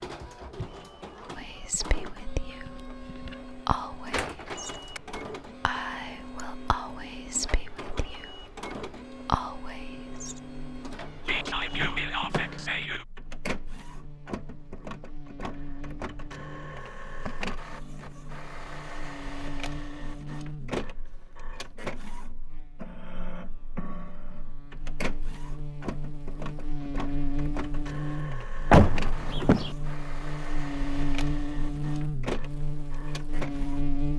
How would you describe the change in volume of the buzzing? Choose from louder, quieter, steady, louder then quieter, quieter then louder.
louder.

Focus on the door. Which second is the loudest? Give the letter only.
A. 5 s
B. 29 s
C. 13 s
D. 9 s
B.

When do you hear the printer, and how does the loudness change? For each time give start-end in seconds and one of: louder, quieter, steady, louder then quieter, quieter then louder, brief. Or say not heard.
0.0-34.0 steady.